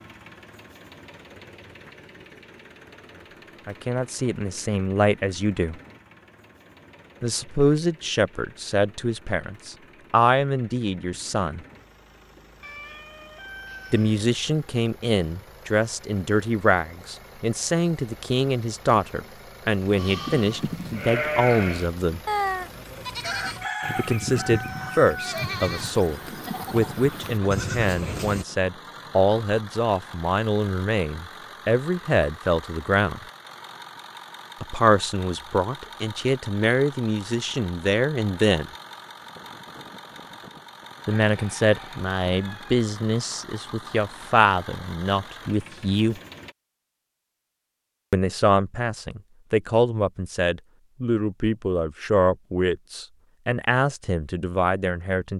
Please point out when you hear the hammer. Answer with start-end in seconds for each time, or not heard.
not heard.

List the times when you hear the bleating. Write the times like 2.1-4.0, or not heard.
19.9-28.4.